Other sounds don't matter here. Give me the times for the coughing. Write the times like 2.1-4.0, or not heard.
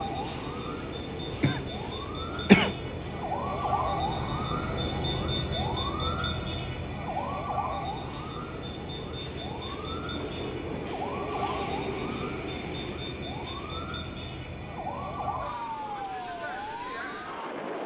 1.3-2.8.